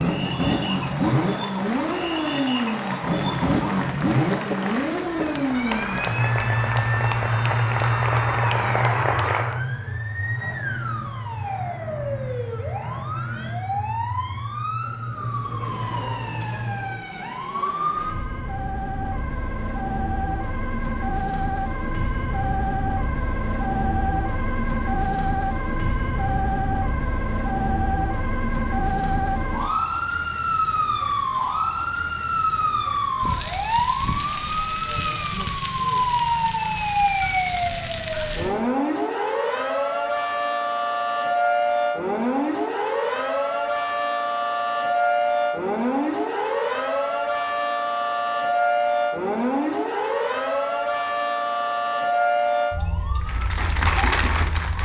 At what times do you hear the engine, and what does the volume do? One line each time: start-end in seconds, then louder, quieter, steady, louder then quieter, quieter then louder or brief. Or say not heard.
0.0-17.1 quieter.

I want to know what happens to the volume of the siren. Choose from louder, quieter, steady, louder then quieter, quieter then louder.
louder.